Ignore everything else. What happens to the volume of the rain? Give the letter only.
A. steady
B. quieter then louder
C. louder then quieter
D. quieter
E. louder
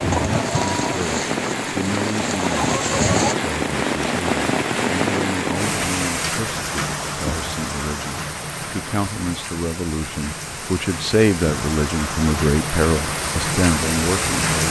B.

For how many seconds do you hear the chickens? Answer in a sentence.
The chickens can be heard for 3 seconds in total.